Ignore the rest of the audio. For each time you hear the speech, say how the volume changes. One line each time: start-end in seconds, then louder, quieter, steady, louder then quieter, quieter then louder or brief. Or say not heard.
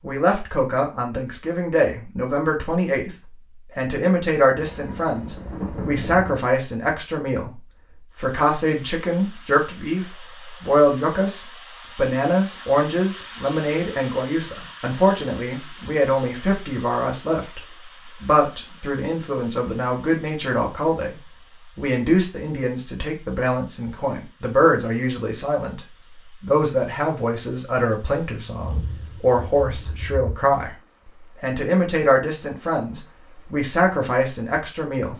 0.0-35.1 steady.